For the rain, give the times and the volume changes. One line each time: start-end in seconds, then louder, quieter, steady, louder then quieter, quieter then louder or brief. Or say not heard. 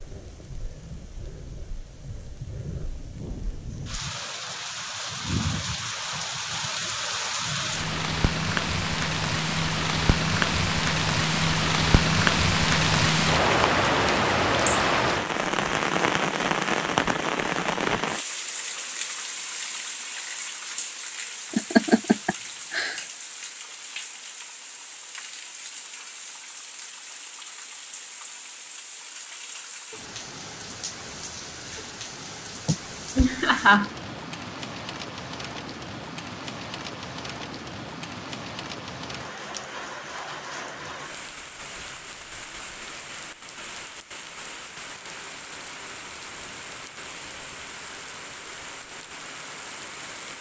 0.0-50.3 louder then quieter.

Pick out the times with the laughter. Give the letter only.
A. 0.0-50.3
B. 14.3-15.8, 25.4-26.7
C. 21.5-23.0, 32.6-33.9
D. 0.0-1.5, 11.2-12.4
C.